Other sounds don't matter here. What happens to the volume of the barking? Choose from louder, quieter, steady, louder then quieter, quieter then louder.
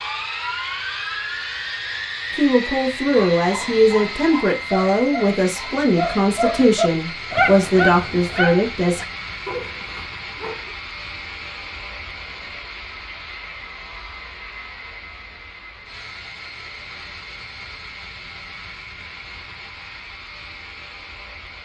louder then quieter.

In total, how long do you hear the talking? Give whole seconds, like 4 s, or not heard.
7 s.